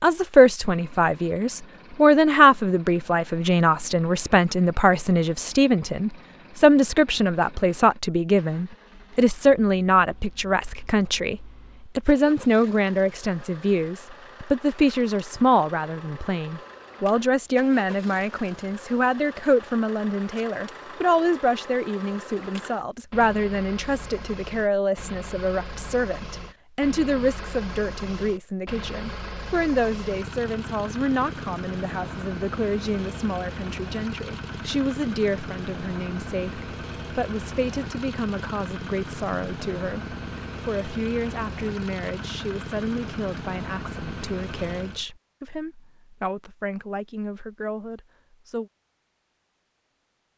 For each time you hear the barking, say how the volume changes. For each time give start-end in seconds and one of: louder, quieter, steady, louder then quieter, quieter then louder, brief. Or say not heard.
not heard.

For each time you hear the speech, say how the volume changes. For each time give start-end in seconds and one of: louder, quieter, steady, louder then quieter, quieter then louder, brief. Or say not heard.
0.0-48.7 quieter.